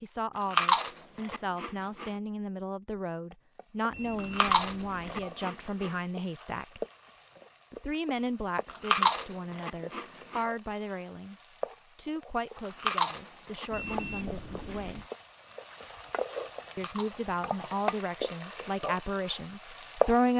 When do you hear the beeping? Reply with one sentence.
The beeping can be heard from 3.9 to 5.3 s and from 13.7 to 15.1 s.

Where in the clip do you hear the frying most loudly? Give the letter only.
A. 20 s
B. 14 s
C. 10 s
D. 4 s
A.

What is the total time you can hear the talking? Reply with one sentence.
The talking can be heard for 17 seconds in total.